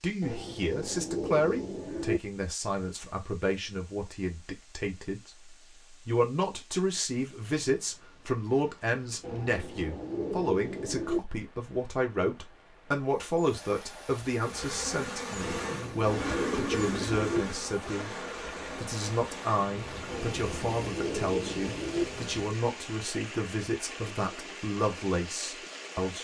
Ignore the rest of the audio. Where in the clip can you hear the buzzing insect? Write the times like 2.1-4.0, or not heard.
14.3-22.6.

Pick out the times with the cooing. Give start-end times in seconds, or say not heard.
0.2-2.2, 9.2-11.2, 15.4-17.4, 20.1-22.1.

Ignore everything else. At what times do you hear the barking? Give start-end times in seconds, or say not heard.
not heard.